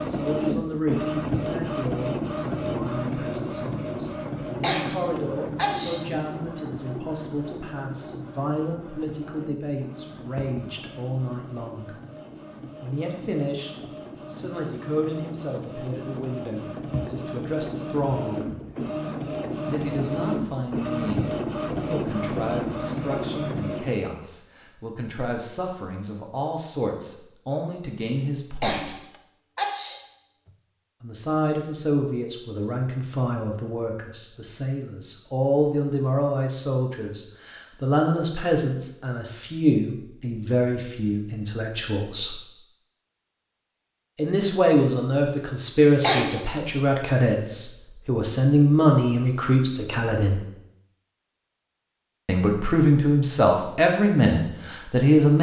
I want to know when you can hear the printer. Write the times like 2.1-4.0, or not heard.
0.0-24.0.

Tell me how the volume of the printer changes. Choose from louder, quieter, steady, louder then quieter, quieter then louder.
quieter then louder.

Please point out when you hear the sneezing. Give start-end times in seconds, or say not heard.
4.6-6.0, 28.6-30.5, 46.0-46.6.